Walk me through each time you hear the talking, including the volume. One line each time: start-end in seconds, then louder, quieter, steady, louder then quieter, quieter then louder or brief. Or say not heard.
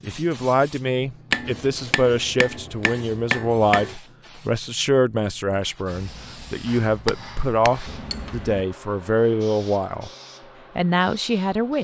0.0-10.1 steady
10.8-11.7 brief.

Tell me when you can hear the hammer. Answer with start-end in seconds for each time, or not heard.
1.3-4.0, 6.7-8.6.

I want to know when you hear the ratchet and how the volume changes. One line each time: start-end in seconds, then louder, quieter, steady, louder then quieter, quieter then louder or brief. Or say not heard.
not heard.